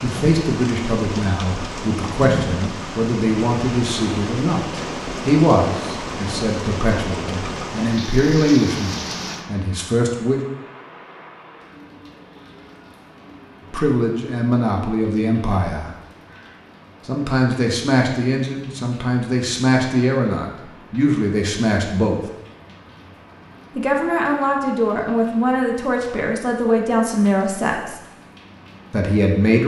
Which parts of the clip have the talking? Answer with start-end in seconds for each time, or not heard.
0.0-10.4, 13.7-15.9, 17.1-22.2, 23.8-28.0, 28.9-29.6.